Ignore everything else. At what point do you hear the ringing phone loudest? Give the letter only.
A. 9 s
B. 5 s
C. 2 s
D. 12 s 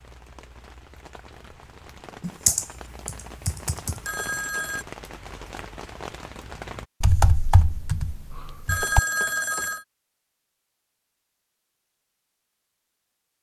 A.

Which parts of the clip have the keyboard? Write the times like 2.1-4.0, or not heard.
2.2-4.1, 7.0-9.0.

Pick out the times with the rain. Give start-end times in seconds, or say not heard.
0.0-6.8.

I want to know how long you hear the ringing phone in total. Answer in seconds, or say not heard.
2 s.